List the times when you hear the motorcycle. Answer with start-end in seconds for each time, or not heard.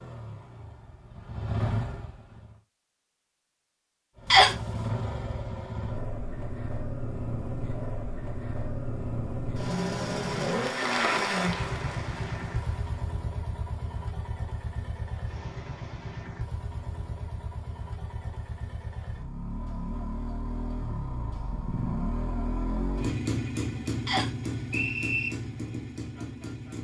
0.0-2.6, 4.2-26.7.